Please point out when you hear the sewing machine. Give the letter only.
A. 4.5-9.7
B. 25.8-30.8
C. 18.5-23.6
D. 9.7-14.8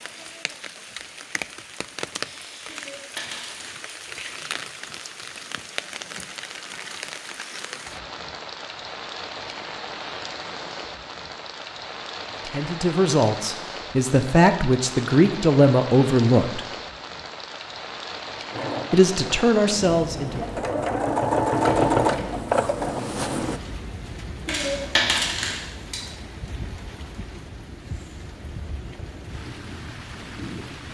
C.